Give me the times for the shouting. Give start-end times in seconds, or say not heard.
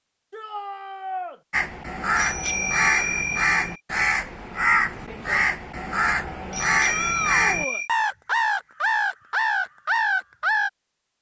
0.3-1.4, 6.8-7.8.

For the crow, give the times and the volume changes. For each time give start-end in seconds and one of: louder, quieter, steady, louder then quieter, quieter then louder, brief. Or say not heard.
1.5-10.7 steady.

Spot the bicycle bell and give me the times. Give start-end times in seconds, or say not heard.
2.1-3.8, 6.5-7.9.